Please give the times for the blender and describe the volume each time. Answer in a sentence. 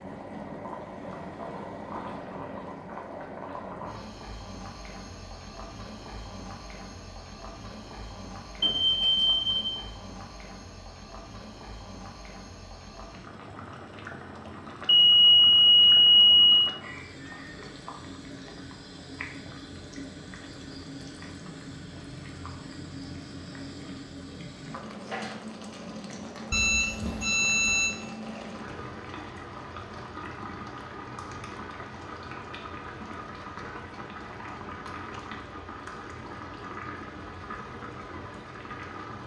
You can't hear the blender here.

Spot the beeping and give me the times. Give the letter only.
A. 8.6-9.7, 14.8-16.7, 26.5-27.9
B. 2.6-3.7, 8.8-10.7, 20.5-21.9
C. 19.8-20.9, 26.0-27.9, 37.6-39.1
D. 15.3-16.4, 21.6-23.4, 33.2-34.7
A.